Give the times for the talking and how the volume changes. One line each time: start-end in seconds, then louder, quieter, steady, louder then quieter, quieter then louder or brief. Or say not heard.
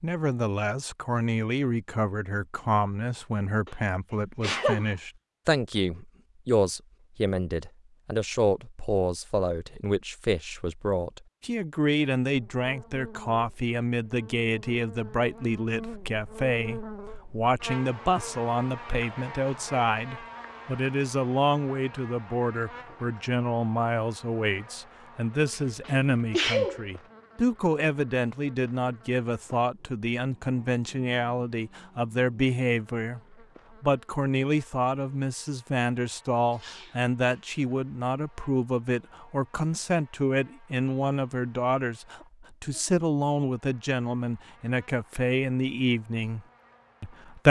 0.0-33.2 steady
33.8-47.4 steady.